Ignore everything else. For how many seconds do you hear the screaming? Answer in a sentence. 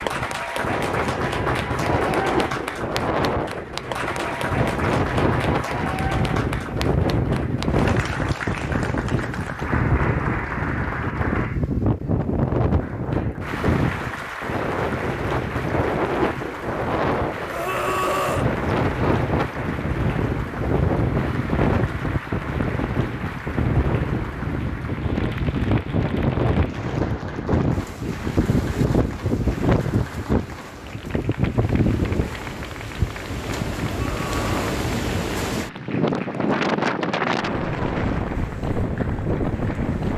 The screaming can be heard for 2 seconds in total.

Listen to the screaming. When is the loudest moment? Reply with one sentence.
The loudest moment of the screaming is at 18 seconds.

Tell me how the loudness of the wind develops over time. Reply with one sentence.
The loudness of the wind stays about the same.